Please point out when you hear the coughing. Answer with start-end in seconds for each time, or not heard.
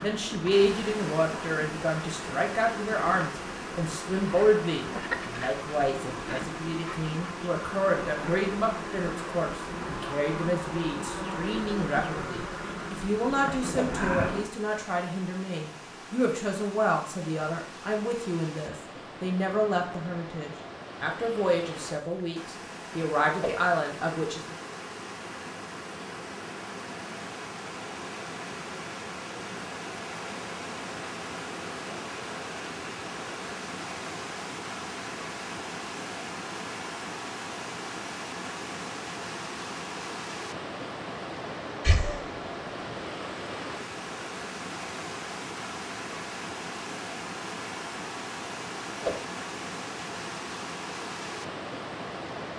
41.8-42.2.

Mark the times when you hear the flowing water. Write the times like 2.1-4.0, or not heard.
0.0-52.5.